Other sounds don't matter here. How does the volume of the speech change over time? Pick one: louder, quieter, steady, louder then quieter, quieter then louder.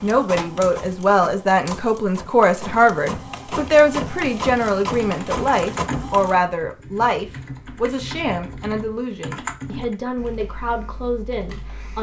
quieter.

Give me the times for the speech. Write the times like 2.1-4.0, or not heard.
0.0-11.9.